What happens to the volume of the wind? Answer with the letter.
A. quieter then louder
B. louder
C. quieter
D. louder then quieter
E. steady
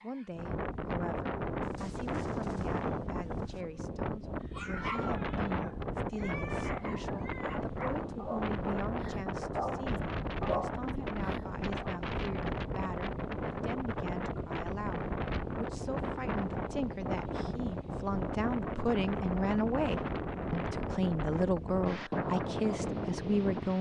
E.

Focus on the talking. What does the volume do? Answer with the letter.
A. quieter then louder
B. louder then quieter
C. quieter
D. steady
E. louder
E.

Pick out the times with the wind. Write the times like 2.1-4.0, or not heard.
0.0-23.7.